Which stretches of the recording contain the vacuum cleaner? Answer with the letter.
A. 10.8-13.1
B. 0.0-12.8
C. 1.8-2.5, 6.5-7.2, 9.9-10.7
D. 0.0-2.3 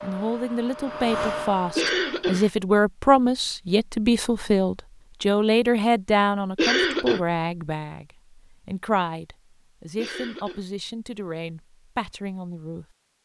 D.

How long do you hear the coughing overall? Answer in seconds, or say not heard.
2 s.